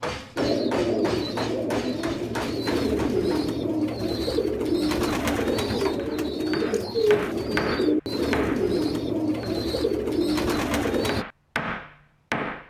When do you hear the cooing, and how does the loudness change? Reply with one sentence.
You can hear the cooing from 0.3 to 11.2 s, at a steady volume.